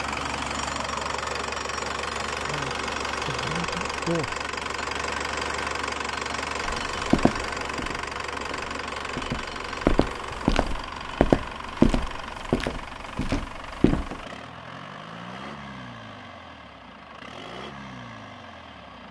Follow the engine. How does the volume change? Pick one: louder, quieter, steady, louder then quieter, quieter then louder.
quieter.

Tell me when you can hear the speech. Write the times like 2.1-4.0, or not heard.
2.5-4.4.